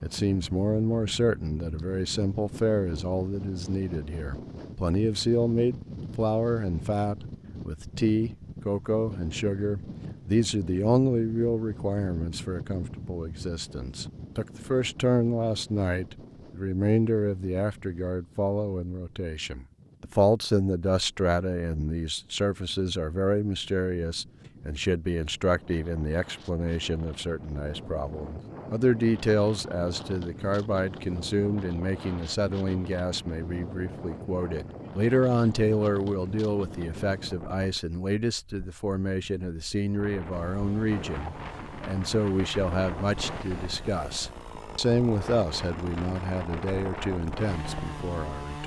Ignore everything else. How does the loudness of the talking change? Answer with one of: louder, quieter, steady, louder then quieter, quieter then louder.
steady.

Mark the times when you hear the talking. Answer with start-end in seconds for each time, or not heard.
0.0-48.6.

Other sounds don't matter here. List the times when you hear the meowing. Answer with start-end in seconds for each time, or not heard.
not heard.